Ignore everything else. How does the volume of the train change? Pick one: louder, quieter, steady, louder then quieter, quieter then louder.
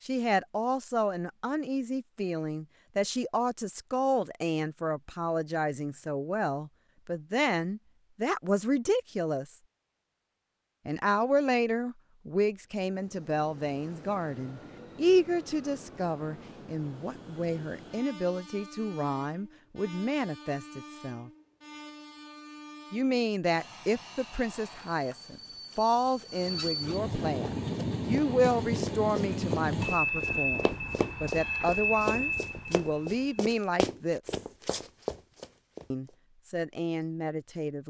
louder.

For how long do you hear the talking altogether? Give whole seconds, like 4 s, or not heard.
33 s.